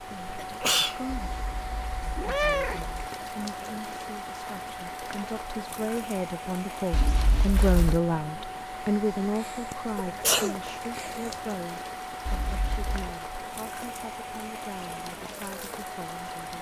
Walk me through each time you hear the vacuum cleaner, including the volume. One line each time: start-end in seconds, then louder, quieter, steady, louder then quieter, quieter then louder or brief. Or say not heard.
0.0-16.5 steady.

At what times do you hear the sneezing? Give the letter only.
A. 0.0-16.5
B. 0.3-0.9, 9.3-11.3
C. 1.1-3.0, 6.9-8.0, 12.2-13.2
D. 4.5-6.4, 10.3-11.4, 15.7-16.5
B.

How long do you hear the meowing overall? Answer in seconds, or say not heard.
4 s.